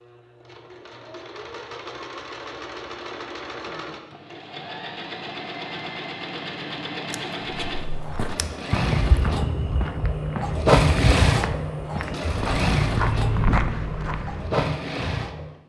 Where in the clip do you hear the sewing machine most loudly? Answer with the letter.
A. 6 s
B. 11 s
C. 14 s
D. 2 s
B.